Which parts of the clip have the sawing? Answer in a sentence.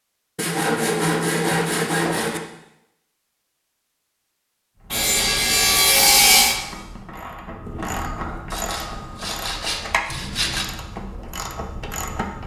You can hear the sawing from 0.3 to 2.4 s, from 4.9 to 6.6 s and from 8.5 to 10.7 s.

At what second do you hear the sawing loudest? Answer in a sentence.
The loudest moment of the sawing is at 6 seconds.